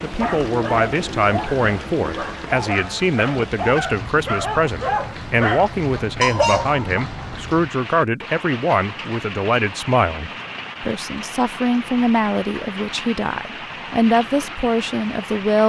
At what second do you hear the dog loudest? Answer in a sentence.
The loudest moment of the dog is at 6 seconds.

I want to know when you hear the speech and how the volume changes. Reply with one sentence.
You can hear the speech from 0.0 to 15.6 s, at a steady volume.